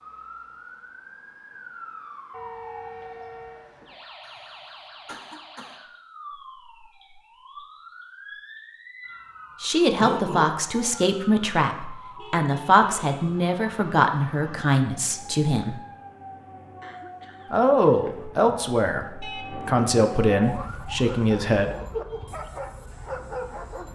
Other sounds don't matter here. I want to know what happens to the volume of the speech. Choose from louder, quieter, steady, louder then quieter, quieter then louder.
steady.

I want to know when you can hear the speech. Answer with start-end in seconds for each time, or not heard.
9.6-15.8, 17.5-21.8.